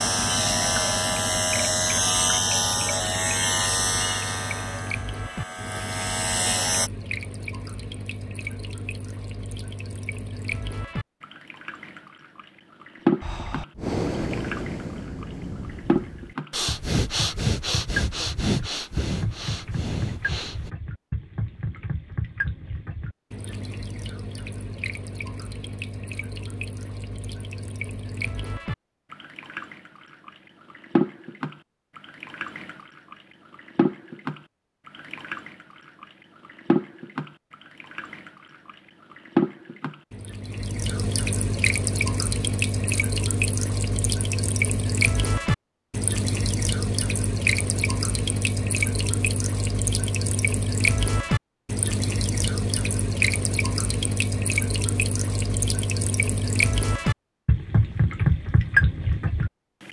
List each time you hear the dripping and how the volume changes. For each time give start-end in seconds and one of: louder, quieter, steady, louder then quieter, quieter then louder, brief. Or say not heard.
0.0-59.8 louder.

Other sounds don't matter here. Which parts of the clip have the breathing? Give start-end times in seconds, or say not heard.
13.2-20.7.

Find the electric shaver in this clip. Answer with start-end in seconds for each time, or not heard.
0.0-6.9.